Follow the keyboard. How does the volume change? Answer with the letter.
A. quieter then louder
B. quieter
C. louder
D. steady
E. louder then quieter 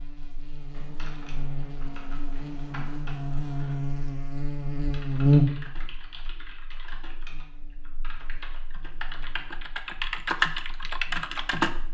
C.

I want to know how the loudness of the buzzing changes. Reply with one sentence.
The volume of the buzzing goes up, then down.